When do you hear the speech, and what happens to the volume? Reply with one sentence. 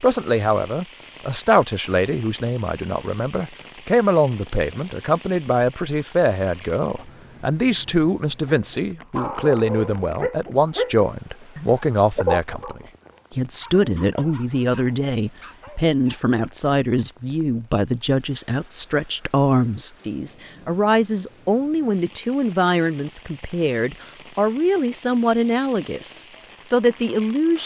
The speech can be heard from 0.0 to 27.6 s, at a steady volume.